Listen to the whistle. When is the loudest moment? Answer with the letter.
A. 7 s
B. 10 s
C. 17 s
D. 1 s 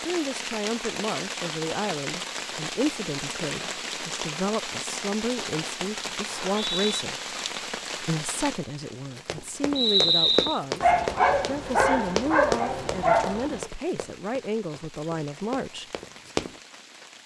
B.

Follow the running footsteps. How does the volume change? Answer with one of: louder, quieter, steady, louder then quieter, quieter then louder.
quieter.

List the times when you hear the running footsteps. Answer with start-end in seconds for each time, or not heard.
9.2-16.6.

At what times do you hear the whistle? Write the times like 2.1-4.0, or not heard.
6.2-7.0, 9.8-10.6.